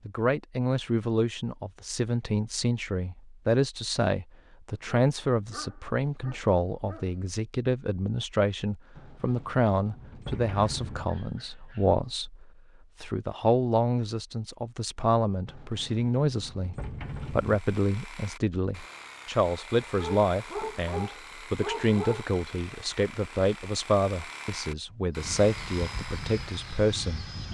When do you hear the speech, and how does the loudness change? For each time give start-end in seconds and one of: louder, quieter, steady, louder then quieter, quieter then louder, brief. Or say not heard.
0.1-27.4 steady.